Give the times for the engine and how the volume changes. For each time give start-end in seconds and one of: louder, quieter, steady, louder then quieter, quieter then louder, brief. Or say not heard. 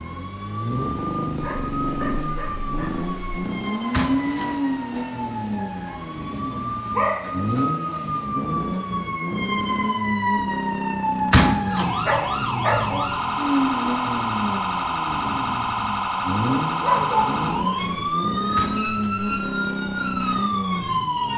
0.0-21.3 steady.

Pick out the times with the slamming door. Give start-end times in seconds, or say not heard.
3.9-4.5, 11.3-11.9, 18.6-19.2.